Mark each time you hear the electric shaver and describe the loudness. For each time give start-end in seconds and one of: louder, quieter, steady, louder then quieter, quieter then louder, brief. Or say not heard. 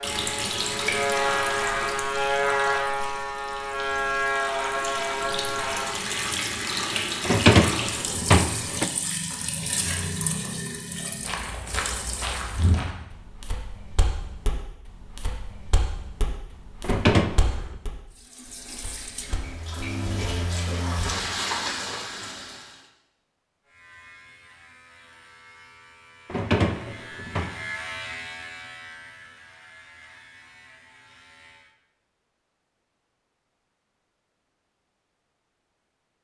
0.0-6.0 steady
23.6-31.8 louder then quieter.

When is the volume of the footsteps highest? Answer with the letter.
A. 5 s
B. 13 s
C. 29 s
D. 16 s
B.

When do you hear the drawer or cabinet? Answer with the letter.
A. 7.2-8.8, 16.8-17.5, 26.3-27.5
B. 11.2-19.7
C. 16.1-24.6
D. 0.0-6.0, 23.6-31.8
A.